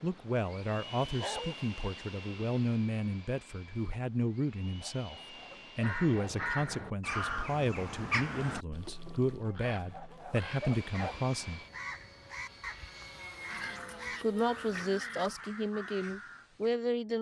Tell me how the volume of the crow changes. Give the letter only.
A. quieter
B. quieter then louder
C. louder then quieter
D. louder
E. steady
A.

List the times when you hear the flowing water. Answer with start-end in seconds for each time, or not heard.
not heard.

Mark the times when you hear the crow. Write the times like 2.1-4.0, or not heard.
5.8-16.8.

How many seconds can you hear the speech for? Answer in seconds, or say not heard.
14 s.